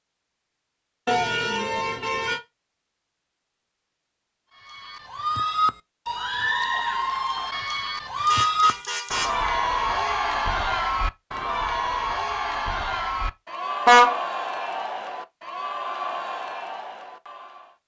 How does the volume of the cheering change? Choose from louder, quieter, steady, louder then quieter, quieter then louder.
quieter.